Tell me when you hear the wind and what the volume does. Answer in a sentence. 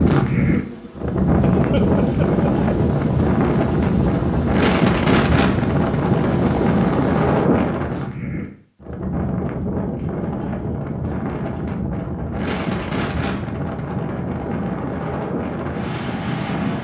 The wind can be heard from 0.0 to 16.7 s, getting quieter.